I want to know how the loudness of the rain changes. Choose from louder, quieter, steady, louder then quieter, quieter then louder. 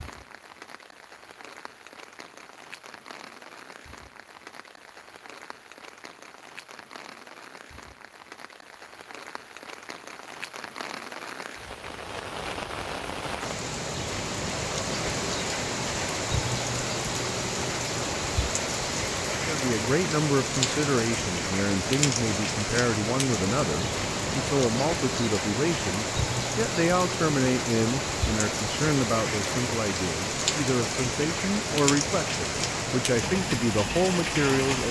louder.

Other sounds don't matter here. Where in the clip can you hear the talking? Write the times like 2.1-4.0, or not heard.
19.4-34.8.